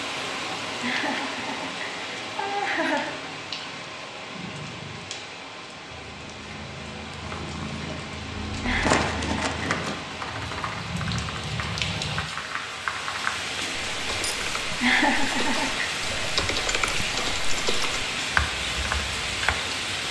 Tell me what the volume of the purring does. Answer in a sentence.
The loudness of the purring goes up.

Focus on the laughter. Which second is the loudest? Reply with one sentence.
The loudest moment of the laughter is at 15 seconds.